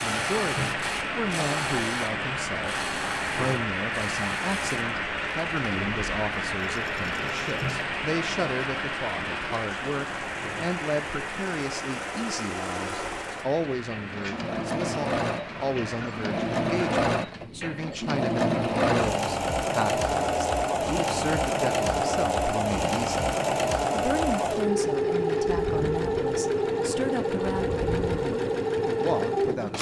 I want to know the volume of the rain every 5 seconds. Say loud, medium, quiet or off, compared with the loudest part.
loud, loud, medium, medium, off, off.